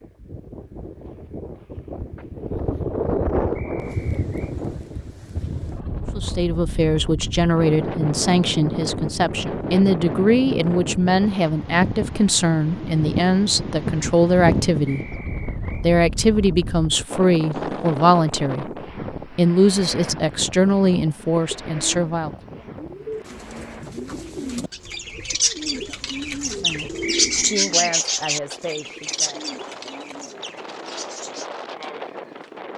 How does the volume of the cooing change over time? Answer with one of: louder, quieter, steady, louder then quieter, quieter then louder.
louder then quieter.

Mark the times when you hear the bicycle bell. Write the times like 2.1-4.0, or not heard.
not heard.